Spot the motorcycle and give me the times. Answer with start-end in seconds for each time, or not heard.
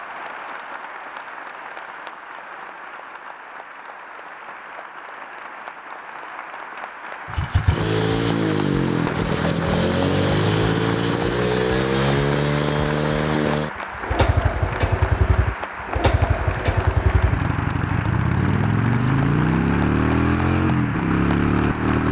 7.2-22.0.